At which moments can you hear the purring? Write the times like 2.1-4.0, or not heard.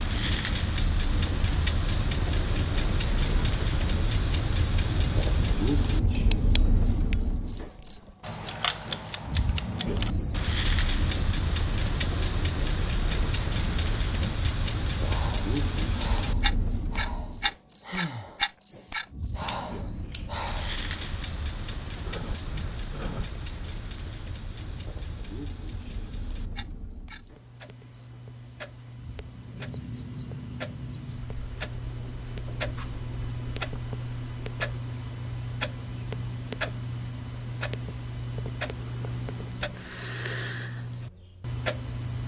not heard.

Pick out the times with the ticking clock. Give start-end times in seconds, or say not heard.
0.0-42.2.